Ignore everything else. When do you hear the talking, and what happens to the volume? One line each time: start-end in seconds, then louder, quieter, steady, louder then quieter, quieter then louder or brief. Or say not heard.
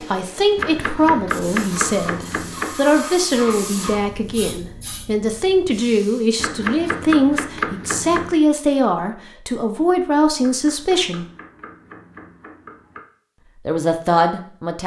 0.0-11.2 steady
13.7-14.8 brief.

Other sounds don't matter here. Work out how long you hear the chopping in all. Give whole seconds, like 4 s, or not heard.
7 s.